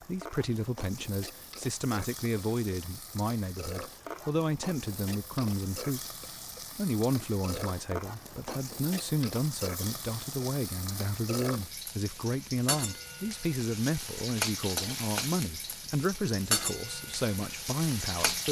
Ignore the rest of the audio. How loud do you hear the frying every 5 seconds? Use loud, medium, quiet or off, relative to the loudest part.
medium, medium, loud, loud.